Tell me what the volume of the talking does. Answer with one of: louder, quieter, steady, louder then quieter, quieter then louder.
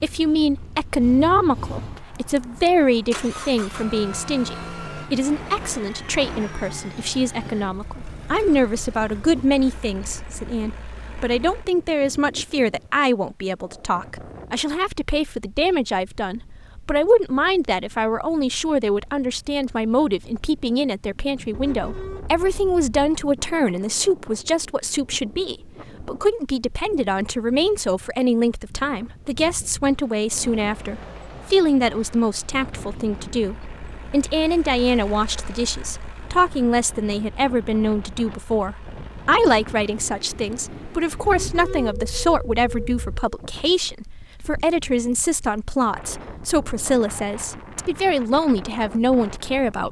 steady.